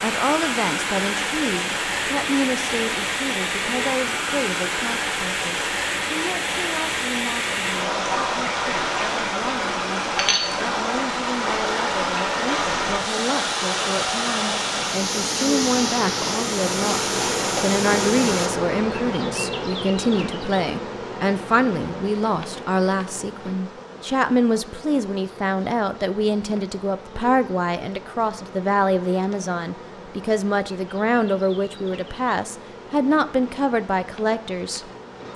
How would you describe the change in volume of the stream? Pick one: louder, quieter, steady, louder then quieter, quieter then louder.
steady.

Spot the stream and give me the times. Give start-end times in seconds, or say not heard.
0.0-18.5.